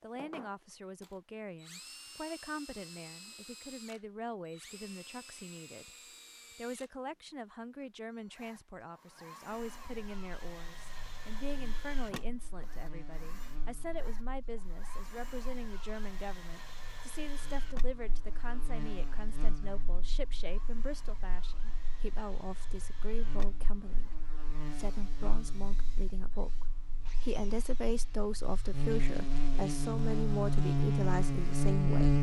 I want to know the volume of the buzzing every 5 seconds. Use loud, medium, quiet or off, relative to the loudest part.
off, off, quiet, quiet, quiet, quiet, loud.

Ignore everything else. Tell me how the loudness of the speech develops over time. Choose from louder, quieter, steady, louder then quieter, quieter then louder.
louder.